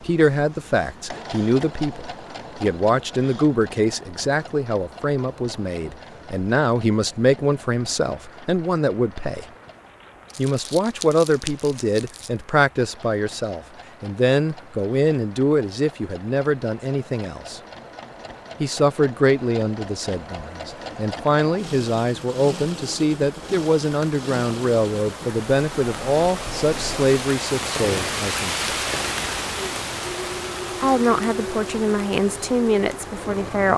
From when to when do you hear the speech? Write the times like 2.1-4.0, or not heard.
0.0-9.4, 10.3-17.6, 18.6-28.7, 30.8-33.7.